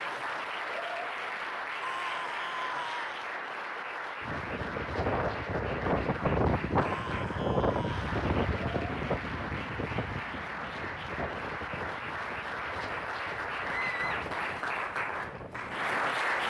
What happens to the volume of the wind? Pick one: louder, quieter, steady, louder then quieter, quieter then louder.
quieter.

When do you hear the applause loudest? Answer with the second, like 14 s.
16 s.